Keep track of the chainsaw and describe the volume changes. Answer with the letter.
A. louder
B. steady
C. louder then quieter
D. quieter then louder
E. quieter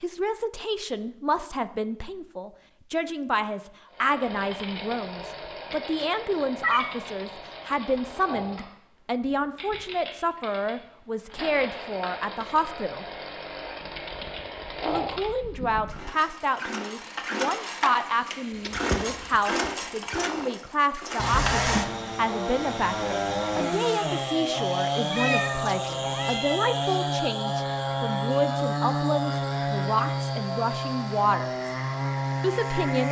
A.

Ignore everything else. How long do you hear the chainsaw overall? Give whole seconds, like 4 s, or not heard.
29 s.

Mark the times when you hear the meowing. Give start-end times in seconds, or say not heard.
6.6-7.0, 18.6-20.4, 25.1-26.6.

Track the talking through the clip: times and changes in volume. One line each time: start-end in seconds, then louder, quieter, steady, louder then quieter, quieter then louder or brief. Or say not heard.
0.0-13.1 steady
14.8-31.7 steady
32.4-33.0 brief.